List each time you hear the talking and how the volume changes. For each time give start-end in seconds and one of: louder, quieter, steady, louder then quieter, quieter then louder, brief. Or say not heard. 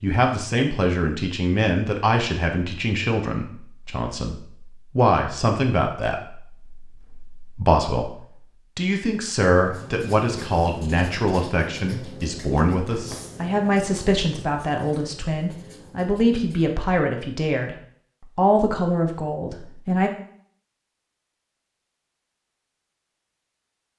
0.0-20.1 steady.